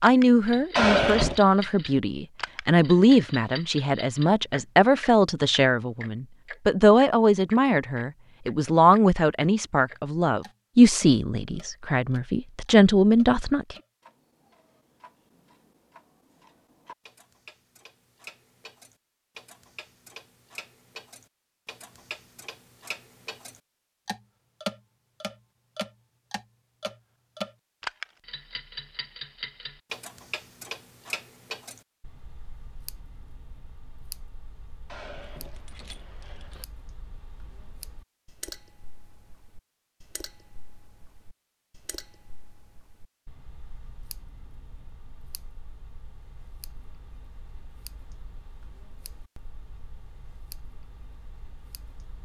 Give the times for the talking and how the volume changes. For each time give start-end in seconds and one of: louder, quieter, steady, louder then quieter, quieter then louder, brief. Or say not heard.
0.0-13.8 steady.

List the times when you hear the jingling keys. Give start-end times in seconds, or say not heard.
0.8-1.4, 34.9-36.6.